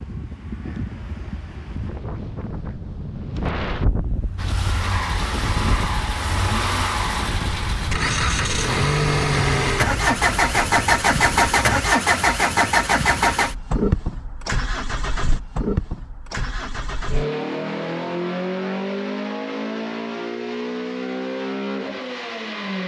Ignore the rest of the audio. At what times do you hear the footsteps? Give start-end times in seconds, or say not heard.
not heard.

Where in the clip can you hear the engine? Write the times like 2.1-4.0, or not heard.
4.3-22.8.